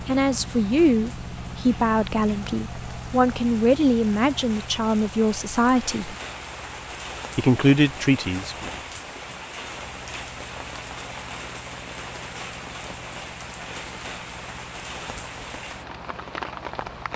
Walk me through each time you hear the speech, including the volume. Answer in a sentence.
You can hear the speech from 0.0 to 6.2 s, at a steady volume; and briefly from 7.3 to 8.7 s.